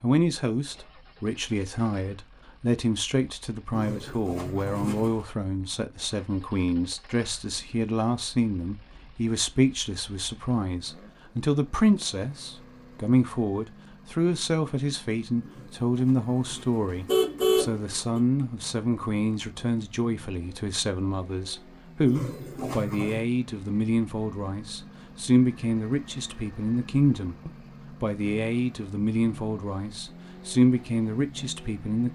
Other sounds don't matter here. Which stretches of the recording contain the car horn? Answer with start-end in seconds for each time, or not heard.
3.7-5.2, 15.4-18.2, 22.1-23.2.